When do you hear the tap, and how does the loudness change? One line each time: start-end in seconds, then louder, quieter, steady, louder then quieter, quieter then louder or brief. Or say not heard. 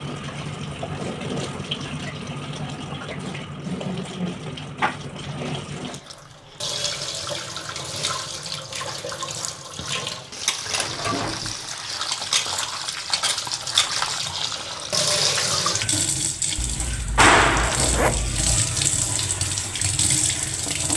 0.0-20.9 louder.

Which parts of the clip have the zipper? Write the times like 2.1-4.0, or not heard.
16.6-18.6.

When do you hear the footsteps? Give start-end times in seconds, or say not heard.
not heard.